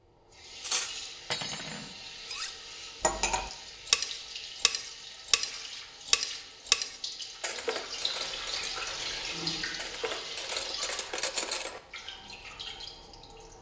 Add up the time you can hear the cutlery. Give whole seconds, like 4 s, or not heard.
11 s.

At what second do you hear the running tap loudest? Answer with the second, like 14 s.
9 s.